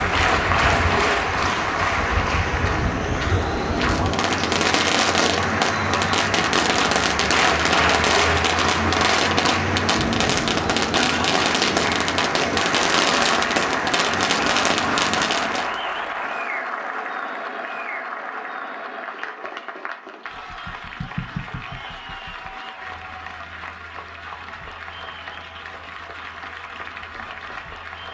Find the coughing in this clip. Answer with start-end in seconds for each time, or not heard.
not heard.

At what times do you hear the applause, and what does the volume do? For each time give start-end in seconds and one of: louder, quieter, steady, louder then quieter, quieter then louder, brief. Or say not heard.
0.0-28.0 quieter.